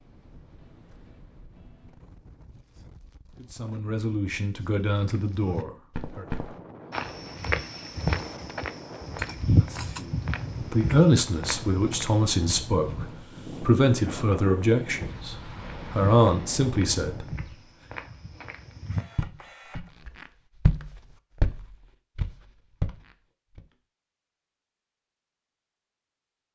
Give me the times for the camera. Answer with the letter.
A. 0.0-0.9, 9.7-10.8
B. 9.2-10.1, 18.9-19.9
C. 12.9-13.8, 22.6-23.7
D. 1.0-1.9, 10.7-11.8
B.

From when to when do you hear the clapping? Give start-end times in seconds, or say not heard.
not heard.